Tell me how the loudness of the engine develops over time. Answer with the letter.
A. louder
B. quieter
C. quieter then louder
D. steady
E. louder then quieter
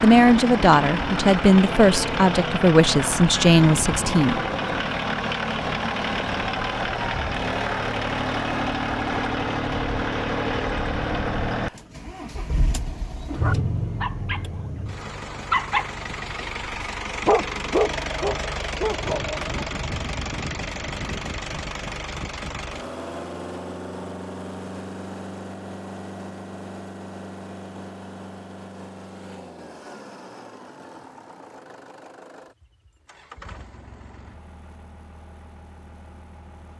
B.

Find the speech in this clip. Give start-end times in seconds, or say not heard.
0.0-4.5.